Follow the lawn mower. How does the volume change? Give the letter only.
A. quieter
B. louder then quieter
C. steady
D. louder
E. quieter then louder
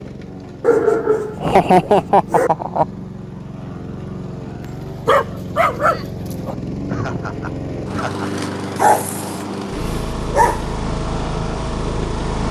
D.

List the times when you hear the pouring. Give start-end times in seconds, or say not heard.
not heard.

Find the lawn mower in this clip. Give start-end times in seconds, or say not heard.
0.0-12.4.